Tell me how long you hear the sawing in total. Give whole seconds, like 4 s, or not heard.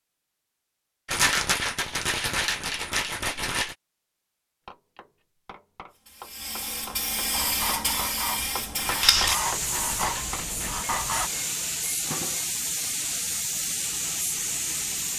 4 s.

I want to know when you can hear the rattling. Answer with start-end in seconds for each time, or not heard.
1.1-3.8, 8.8-10.9.